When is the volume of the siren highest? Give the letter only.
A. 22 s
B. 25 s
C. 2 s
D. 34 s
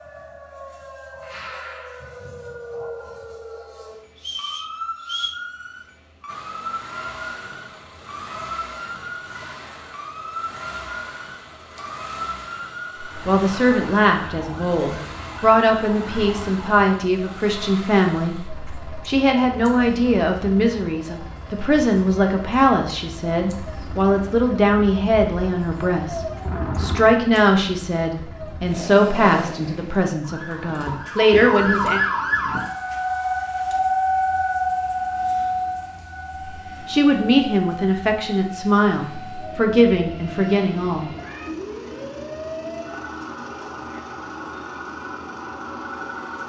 D.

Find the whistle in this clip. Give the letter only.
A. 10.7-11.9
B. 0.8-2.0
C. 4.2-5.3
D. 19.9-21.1
C.